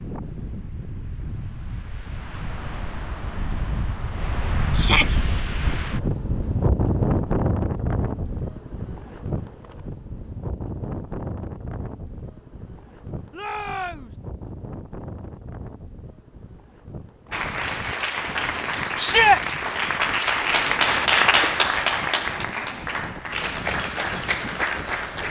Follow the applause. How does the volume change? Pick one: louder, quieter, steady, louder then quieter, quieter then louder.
louder then quieter.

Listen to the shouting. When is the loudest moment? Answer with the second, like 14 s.
19 s.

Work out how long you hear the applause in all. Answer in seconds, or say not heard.
8 s.